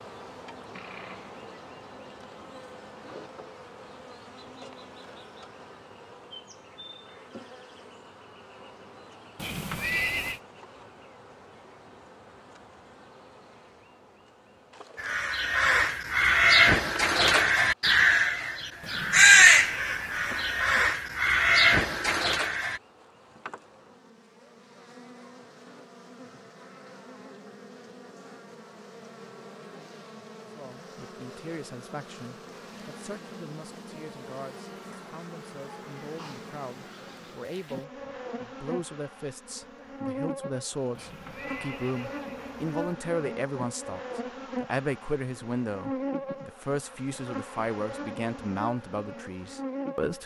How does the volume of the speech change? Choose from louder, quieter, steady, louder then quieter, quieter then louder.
louder.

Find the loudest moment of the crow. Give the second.
19 s.